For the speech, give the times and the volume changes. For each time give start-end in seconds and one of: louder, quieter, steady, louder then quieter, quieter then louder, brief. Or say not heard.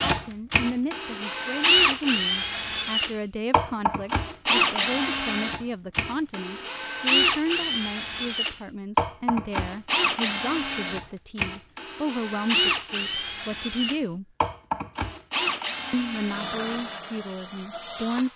0.1-14.2 steady
15.9-18.3 brief.